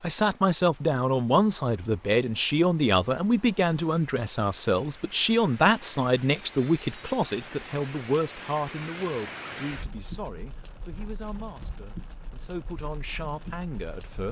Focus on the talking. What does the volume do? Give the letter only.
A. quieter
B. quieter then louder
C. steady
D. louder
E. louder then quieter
A.